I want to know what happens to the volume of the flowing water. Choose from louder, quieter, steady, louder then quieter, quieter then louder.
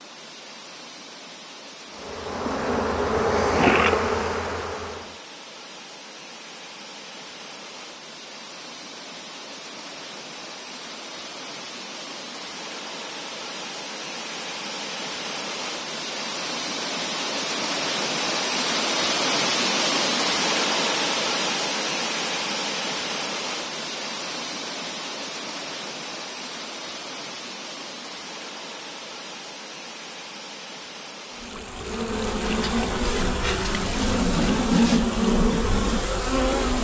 louder then quieter.